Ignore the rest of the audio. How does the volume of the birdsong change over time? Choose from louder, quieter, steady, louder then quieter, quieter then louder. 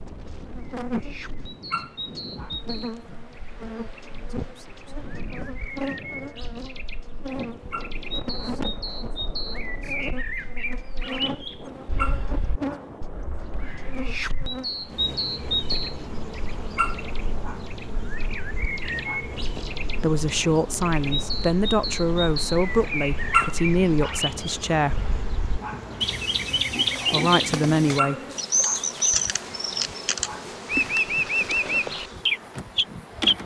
louder.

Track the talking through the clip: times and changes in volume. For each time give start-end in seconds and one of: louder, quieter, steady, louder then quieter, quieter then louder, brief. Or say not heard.
20.0-25.0 steady
27.1-28.1 brief.